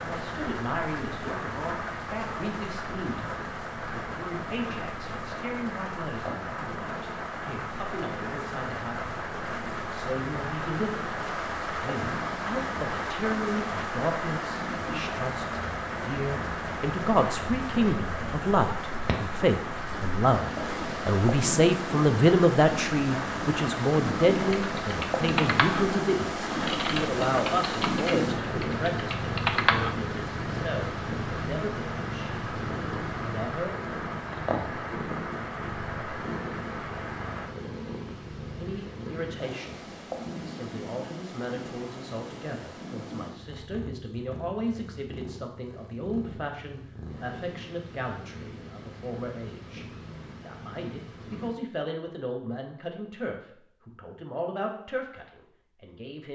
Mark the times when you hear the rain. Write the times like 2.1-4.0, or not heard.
0.0-37.5.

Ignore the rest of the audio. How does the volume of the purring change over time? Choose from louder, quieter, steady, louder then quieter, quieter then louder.
louder then quieter.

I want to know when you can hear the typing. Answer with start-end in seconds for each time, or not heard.
24.4-29.9.